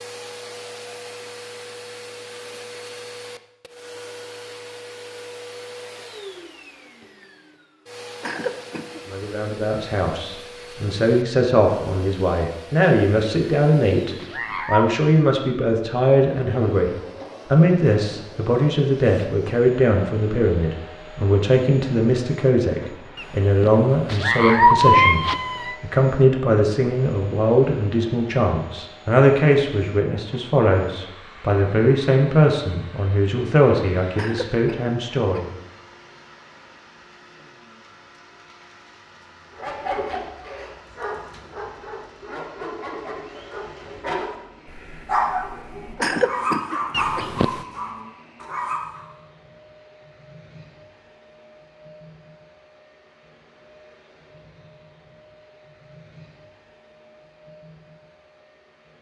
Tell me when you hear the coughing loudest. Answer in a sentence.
The loudest moment of the coughing is at 46 seconds.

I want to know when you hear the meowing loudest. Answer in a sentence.
The loudest moment of the meowing is at 25 seconds.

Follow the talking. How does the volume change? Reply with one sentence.
The volume of the talking stays about the same.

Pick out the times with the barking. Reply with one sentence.
You can hear the barking from 39.5 to 49.0 s.